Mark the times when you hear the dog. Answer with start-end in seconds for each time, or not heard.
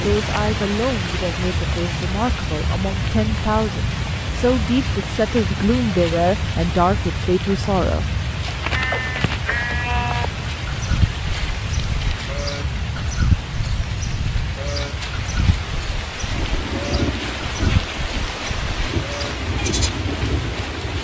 not heard.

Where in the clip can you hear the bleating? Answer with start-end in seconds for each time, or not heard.
8.7-19.9.